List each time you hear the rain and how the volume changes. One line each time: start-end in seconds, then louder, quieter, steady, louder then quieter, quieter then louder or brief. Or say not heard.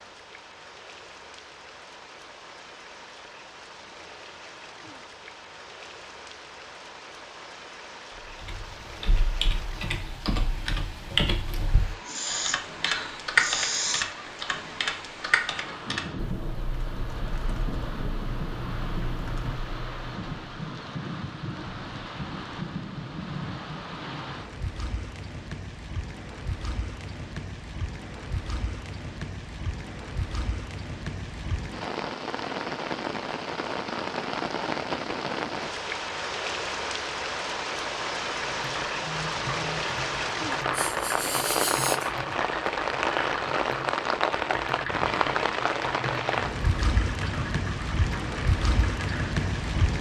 0.0-49.9 louder.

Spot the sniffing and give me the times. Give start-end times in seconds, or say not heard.
12.1-14.1, 40.7-42.1.